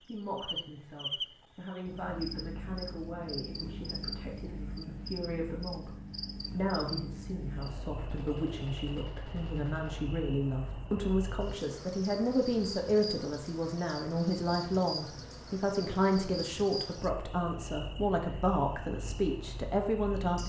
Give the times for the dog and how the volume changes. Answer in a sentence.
The dog can't be heard in this clip.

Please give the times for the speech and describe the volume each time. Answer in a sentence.
The speech can be heard from 0.0 to 20.4 s, getting louder.